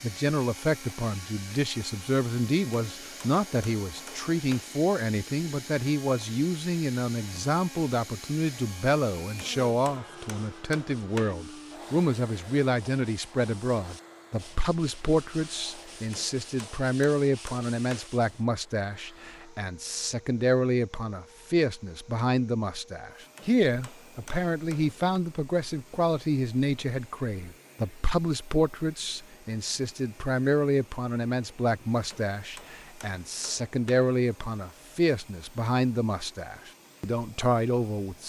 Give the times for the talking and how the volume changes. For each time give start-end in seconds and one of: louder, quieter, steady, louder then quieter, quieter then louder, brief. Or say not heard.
0.0-38.2 steady.